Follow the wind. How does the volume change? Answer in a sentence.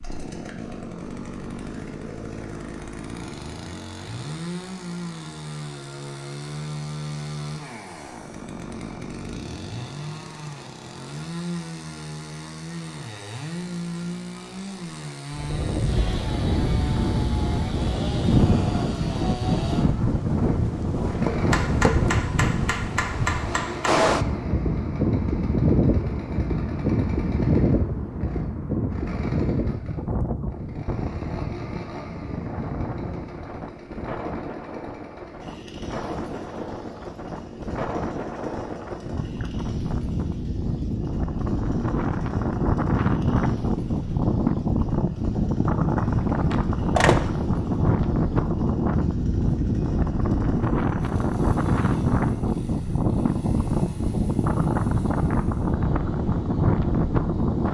The volume of the wind goes down, then up.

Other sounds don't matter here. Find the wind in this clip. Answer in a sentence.
The wind can be heard from 15.3 to 57.6 s.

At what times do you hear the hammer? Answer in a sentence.
You can hear the hammer from 21.5 to 24.1 s.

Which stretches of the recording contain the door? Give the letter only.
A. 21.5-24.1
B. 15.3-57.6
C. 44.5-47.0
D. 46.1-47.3
D.